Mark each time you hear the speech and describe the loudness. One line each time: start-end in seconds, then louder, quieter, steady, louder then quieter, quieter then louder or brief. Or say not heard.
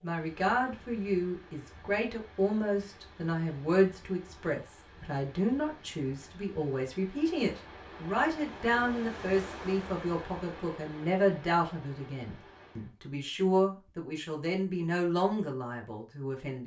0.0-16.6 steady.